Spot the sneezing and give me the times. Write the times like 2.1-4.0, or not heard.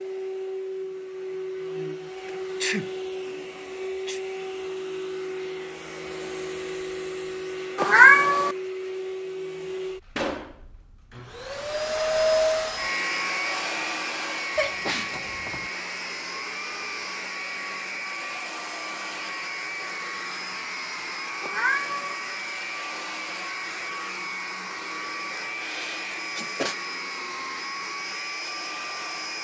2.6-4.2, 14.6-15.7, 25.4-26.8.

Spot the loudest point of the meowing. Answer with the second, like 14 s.
8 s.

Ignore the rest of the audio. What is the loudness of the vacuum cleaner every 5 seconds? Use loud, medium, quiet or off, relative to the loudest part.
medium, medium, loud, medium, medium, medium.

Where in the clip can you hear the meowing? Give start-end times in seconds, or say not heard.
7.8-8.6, 21.4-22.1.